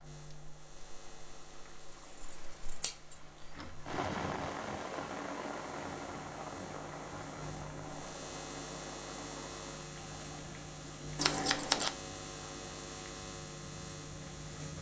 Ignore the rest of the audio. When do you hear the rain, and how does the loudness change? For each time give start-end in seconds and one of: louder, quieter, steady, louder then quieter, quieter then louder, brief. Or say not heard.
0.0-14.7 louder then quieter.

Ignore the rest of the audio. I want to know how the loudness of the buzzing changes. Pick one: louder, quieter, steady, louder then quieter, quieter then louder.
louder.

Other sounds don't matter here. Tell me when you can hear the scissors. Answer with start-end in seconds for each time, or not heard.
2.3-3.1, 11.2-11.9.